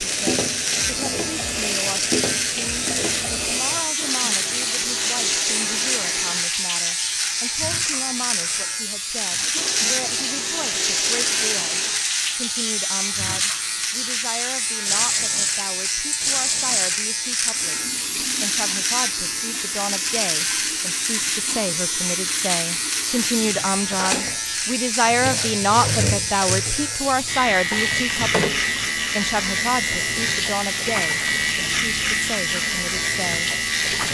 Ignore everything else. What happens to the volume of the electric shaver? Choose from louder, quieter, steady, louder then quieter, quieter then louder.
steady.